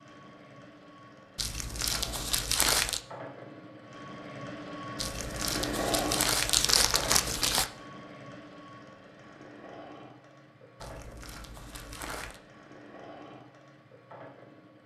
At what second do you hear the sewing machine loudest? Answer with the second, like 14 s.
6 s.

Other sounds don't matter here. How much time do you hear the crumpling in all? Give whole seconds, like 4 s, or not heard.
6 s.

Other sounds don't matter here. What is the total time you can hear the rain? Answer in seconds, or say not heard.
not heard.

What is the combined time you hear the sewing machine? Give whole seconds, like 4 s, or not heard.
15 s.